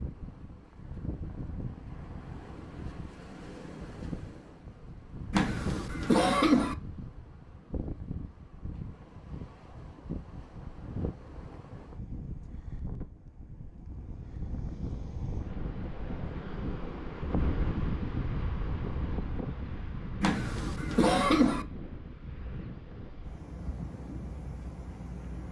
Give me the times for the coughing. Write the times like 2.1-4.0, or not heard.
5.3-6.8, 20.2-21.6.